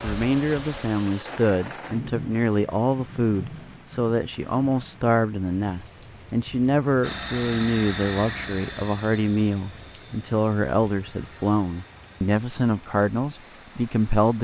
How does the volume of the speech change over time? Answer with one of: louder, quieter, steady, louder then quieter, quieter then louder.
steady.